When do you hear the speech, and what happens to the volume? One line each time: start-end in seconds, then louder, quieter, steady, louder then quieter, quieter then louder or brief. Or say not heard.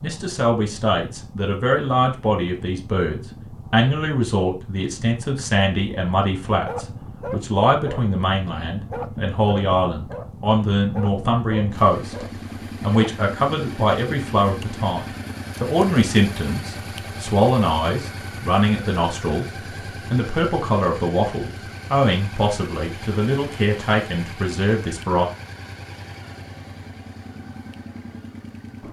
0.0-25.2 steady.